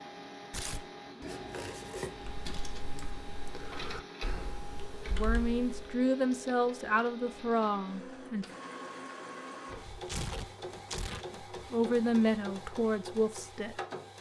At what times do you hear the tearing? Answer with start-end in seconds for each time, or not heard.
0.5-0.9, 9.7-11.2.